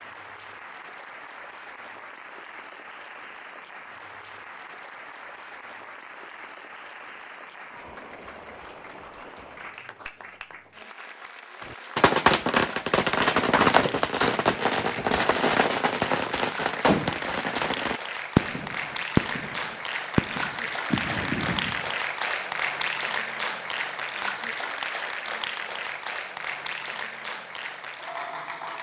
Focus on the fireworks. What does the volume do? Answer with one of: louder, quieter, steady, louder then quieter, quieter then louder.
quieter.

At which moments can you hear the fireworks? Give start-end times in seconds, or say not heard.
11.9-21.9.